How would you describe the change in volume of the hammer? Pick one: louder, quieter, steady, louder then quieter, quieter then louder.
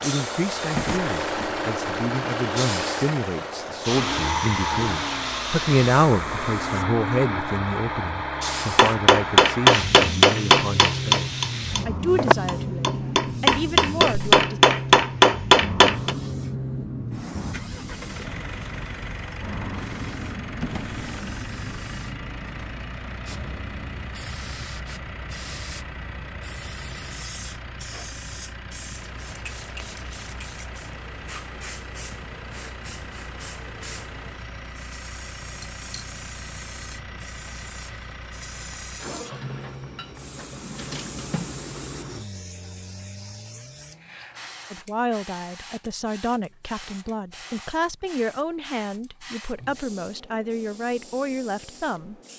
quieter then louder.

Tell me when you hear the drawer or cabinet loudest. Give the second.
1 s.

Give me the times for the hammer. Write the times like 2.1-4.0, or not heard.
8.6-16.1.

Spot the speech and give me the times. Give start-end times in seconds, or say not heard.
0.0-14.6, 44.7-52.2.